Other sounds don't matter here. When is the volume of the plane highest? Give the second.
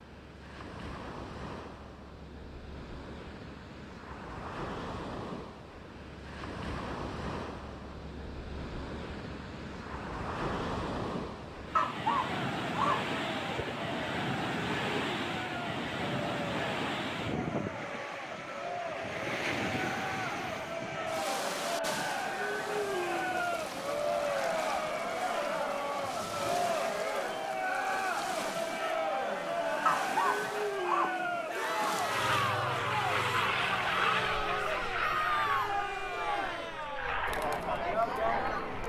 34 s.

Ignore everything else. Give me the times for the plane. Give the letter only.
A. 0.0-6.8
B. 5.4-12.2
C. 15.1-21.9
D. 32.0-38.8
D.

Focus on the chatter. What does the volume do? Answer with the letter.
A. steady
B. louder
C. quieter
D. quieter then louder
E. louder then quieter
B.